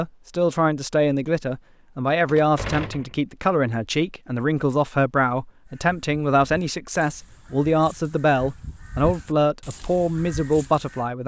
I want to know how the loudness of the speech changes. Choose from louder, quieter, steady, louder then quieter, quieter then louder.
steady.